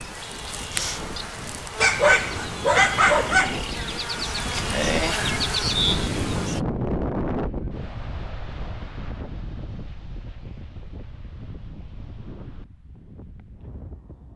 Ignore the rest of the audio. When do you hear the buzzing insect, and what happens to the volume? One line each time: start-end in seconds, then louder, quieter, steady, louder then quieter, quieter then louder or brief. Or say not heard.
0.0-6.6 louder.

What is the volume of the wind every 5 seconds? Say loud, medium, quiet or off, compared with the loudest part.
medium, loud, quiet.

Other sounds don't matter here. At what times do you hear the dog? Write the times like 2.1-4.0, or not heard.
1.8-3.6.